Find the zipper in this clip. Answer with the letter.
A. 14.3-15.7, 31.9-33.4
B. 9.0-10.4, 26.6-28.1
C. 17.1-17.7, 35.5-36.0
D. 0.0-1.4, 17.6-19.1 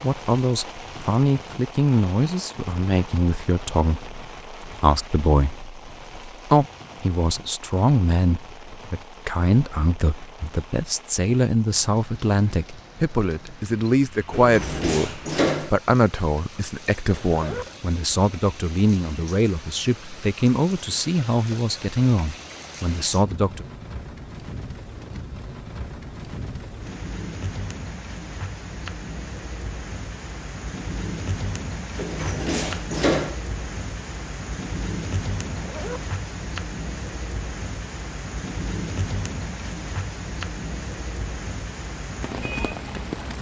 C.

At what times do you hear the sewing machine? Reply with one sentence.
The sewing machine can't be heard in this clip.